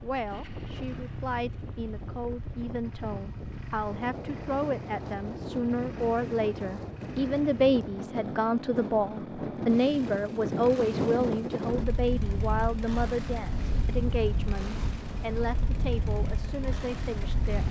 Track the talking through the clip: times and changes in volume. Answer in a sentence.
You can hear the talking from 0.0 to 17.6 s, getting louder then quieter.